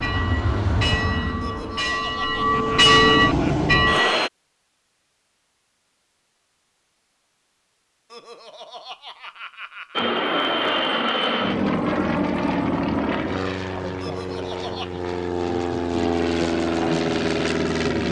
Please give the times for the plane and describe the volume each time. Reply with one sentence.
You can hear the plane from 0.0 to 4.3 s, getting quieter then louder; and from 9.9 to 18.0 s, getting quieter then louder.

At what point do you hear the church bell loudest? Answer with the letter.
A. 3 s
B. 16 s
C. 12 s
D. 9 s
A.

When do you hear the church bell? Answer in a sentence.
The church bell can be heard from 0.0 to 4.2 s.